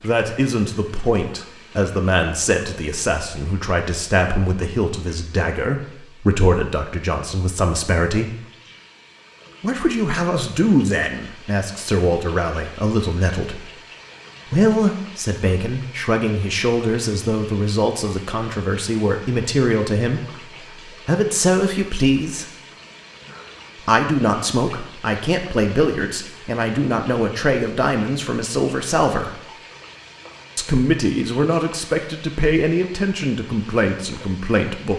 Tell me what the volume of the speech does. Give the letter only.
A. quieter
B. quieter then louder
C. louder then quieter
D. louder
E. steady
E.